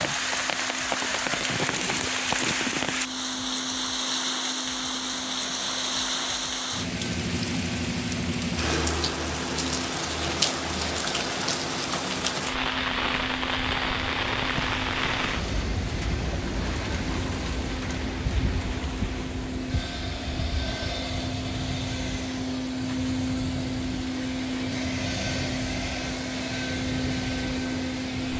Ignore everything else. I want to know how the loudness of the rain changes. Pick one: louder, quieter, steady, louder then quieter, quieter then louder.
quieter.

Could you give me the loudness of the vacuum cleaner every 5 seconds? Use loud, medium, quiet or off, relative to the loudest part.
medium, medium, medium, medium, loud, loud.